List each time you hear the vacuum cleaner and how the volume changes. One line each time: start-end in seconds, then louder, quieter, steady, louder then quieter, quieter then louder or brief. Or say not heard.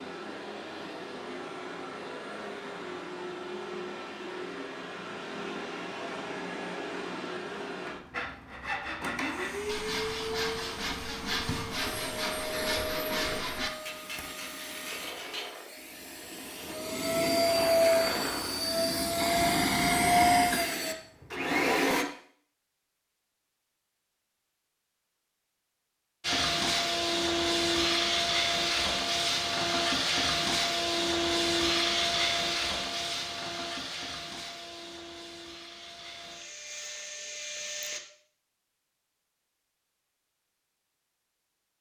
0.0-22.1 louder
26.2-38.0 quieter.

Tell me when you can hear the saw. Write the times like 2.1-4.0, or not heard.
8.1-15.5.